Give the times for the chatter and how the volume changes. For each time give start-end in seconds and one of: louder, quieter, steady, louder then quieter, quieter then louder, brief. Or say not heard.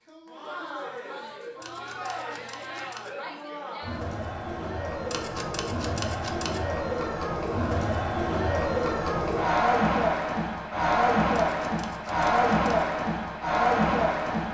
0.1-14.5 louder.